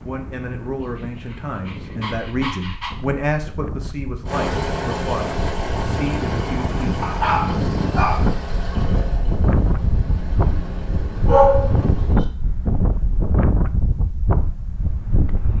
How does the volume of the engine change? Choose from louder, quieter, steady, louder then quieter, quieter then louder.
quieter.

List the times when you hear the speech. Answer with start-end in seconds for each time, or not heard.
0.0-7.0.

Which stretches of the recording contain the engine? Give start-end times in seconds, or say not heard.
4.2-12.2.